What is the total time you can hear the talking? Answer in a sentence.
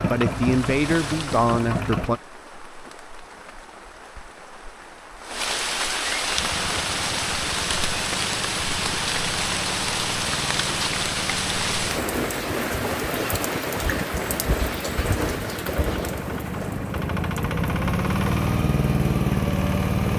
The talking can be heard for 2 seconds in total.